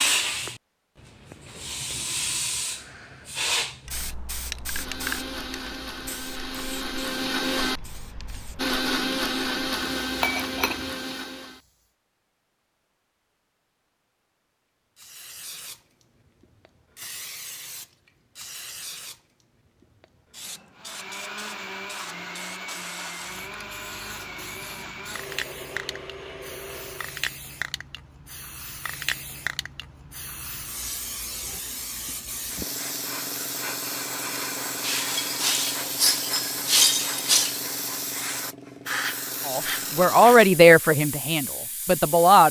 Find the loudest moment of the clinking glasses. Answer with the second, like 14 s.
37 s.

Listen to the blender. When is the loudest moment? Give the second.
9 s.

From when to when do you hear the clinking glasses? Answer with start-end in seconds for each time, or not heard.
10.2-10.9, 34.8-37.6.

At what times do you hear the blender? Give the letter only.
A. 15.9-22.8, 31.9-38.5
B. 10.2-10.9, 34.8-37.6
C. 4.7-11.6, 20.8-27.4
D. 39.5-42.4
C.